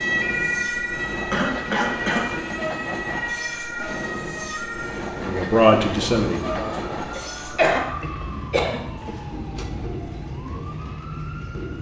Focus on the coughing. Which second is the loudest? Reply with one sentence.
The volume of the coughing peaks at 8 seconds.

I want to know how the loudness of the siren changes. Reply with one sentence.
The loudness of the siren goes down.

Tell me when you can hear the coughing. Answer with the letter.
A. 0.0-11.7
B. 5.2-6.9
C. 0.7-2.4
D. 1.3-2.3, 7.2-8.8
D.